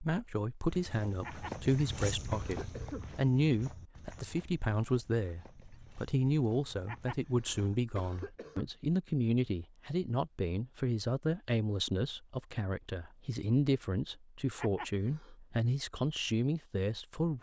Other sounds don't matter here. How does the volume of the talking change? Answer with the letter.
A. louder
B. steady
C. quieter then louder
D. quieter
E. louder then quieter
B.